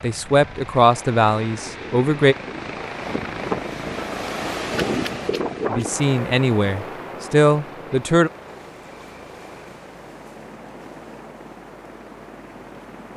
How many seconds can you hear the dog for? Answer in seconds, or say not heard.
not heard.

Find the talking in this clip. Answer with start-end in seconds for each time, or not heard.
0.0-2.4, 5.7-8.3.